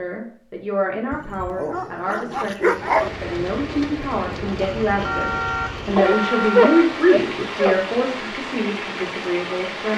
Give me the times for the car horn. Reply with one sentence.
The car horn can be heard from 5.0 to 6.8 s.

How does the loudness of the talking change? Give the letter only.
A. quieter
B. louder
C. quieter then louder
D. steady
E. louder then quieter
E.